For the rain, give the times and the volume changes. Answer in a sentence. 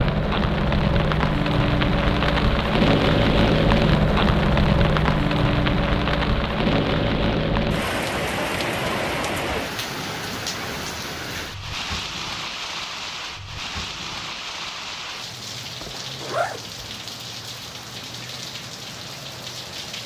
The rain can be heard from 0.0 to 20.0 s, getting quieter.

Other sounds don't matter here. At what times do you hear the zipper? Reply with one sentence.
The zipper can be heard from 15.9 to 16.6 s.